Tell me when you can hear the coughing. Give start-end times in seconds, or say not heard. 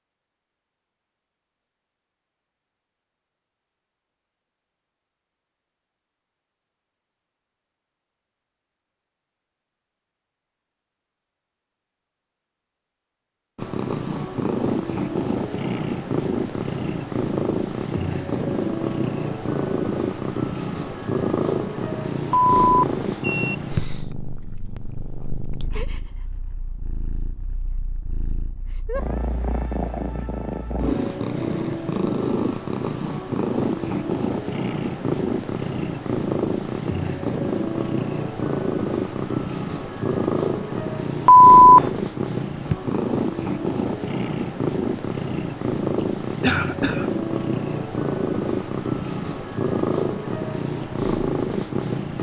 46.4-47.1.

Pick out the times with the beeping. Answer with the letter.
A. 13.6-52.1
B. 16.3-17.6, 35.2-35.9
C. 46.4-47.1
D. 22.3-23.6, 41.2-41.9
D.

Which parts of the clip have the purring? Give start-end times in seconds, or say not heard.
13.6-52.1.